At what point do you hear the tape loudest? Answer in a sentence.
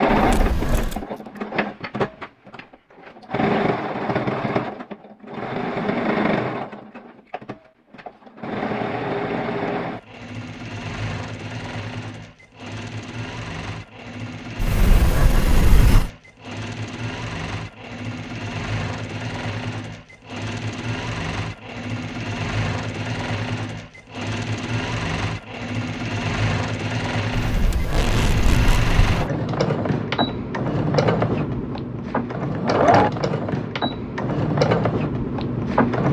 The loudest moment of the tape is at 28 seconds.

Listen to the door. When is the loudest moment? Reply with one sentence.
The volume of the door peaks at 16 seconds.